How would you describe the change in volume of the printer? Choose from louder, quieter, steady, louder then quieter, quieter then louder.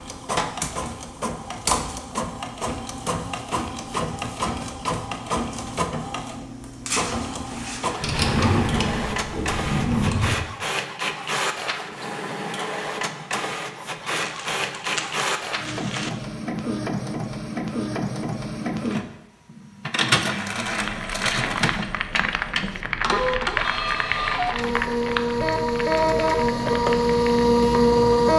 louder.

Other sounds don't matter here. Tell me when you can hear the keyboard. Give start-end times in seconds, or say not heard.
20.6-27.5.